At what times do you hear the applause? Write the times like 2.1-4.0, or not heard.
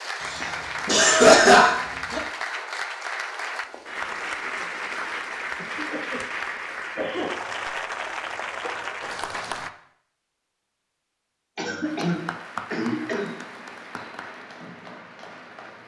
0.0-9.7, 11.8-15.8.